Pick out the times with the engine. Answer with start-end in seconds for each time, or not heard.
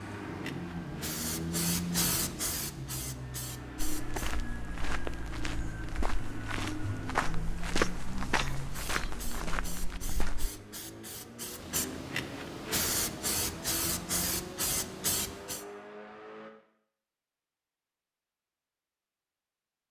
0.0-16.5.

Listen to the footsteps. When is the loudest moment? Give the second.
8 s.